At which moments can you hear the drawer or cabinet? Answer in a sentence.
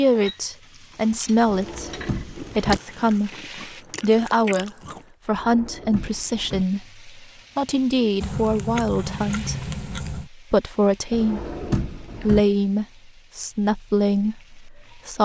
You can hear the drawer or cabinet from 1.4 to 2.8 s, from 5.3 to 6.7 s and from 11.1 to 12.4 s.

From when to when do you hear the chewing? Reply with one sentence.
You can hear the chewing from 2.4 to 5.0 s and from 8.2 to 10.3 s.